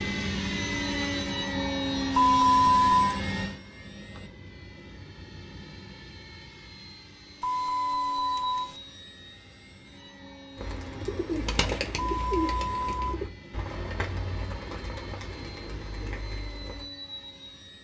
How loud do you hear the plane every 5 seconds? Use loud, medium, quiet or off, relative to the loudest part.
loud, quiet, quiet, quiet.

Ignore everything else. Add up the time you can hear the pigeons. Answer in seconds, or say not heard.
6 s.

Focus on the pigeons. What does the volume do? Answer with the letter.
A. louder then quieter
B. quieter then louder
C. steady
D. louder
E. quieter
E.